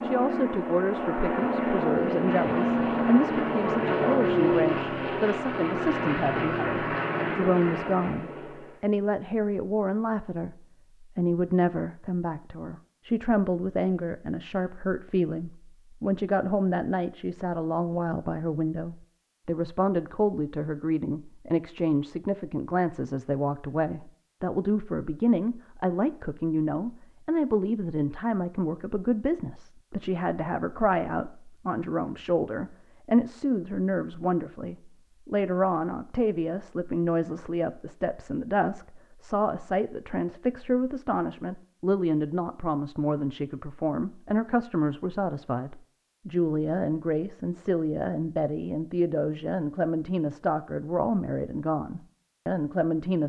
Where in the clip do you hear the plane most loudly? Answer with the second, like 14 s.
4 s.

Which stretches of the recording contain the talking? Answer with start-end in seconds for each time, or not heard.
0.0-53.2.